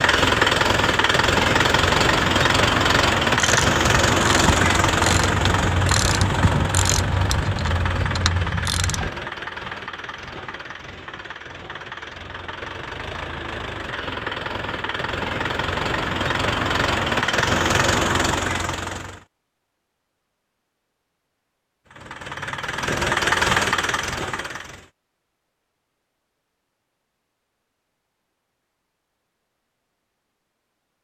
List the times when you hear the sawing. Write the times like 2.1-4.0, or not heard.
not heard.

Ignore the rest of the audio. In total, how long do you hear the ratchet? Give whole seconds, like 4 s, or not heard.
6 s.